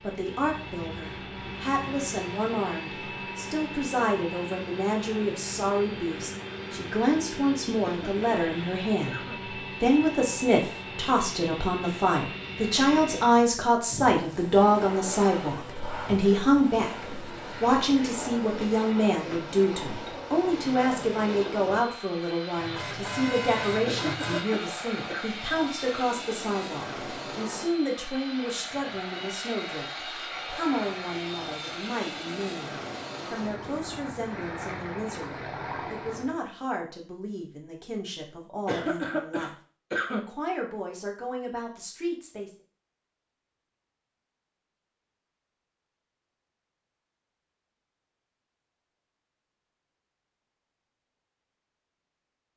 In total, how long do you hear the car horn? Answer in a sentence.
You can hear the car horn for 2 seconds altogether.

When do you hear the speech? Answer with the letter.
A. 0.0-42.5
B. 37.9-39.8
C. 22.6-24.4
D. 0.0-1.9
A.